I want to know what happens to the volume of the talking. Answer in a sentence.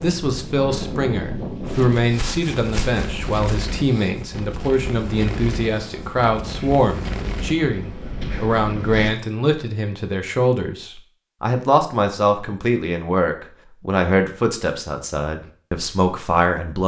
The loudness of the talking stays about the same.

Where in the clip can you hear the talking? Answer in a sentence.
You can hear the talking from 0.0 to 16.8 s.